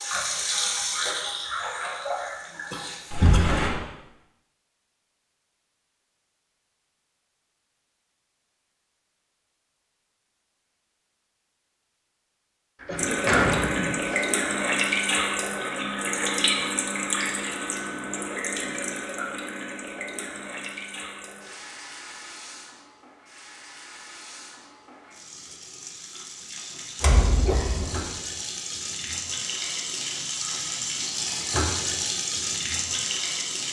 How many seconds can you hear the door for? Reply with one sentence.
You can hear the door for 3 seconds altogether.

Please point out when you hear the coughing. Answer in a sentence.
The coughing can be heard from 2.7 to 3.5 s, from 12.8 to 14.0 s and from 27.4 to 28.1 s.